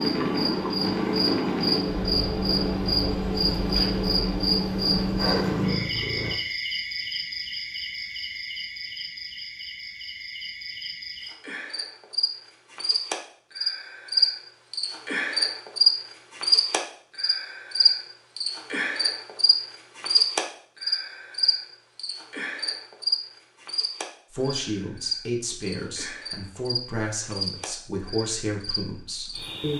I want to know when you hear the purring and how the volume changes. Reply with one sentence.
You can hear the purring from 0.0 to 6.3 s, getting quieter then louder.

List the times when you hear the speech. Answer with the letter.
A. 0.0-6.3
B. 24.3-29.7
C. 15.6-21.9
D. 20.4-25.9
B.